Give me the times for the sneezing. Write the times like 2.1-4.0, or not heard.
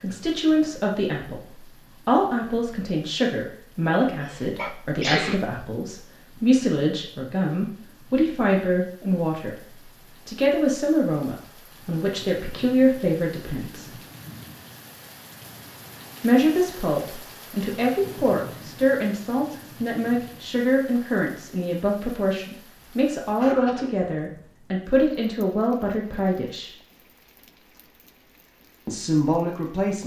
4.2-5.6, 22.8-23.9.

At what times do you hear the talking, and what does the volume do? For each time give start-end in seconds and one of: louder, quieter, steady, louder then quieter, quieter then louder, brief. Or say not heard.
0.0-13.9 steady
16.2-26.7 steady
28.9-30.0 brief.